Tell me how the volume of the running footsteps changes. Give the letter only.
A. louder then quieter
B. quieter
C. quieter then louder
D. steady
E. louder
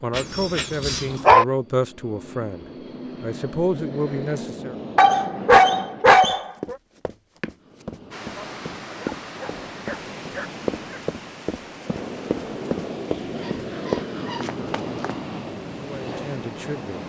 E.